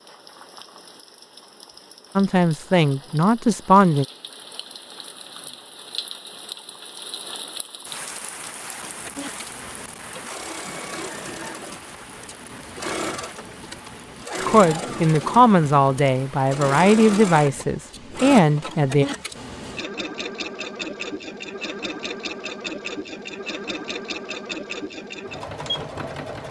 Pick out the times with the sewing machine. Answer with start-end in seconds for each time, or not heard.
8.8-26.4.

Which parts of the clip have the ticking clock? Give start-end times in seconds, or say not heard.
not heard.